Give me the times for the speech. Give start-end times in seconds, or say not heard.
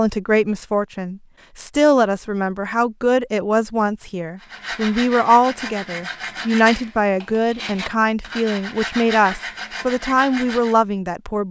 0.0-11.4.